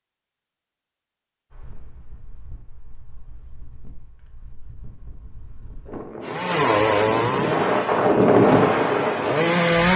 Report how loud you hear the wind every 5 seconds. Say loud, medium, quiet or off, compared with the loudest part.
quiet, loud.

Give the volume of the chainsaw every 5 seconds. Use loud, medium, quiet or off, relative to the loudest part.
off, loud.